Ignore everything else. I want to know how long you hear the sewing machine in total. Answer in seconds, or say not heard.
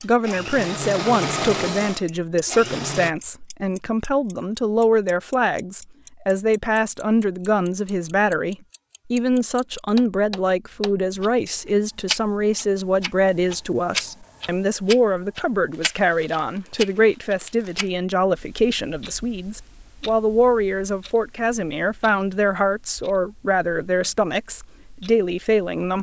3 s.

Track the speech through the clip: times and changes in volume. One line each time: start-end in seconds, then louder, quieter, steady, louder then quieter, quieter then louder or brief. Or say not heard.
0.0-25.9 steady.